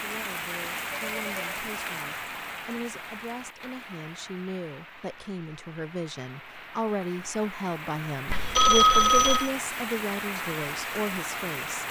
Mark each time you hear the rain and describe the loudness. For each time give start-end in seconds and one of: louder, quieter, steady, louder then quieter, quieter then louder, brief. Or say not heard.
0.0-11.8 quieter then louder.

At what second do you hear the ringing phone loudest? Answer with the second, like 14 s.
9 s.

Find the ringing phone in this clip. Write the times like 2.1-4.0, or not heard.
0.8-1.6, 8.2-9.5.